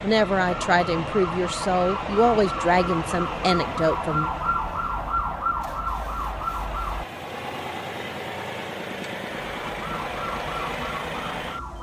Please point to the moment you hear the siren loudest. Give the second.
5 s.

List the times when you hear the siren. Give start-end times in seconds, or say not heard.
0.1-7.0, 9.4-11.7.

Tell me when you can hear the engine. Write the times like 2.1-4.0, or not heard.
0.0-11.7.